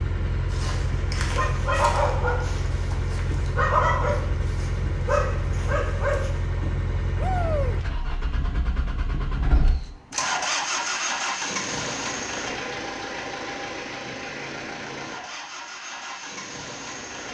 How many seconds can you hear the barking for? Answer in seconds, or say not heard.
6 s.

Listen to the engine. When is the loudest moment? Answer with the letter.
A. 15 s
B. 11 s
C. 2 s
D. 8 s
B.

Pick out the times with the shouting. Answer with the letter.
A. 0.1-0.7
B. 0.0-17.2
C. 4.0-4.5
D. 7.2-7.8
D.